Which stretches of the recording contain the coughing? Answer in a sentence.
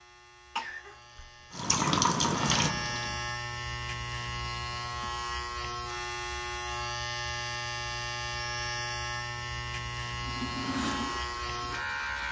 You can hear the coughing from 0.6 to 1.9 s.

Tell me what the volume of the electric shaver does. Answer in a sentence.
The volume of the electric shaver goes up.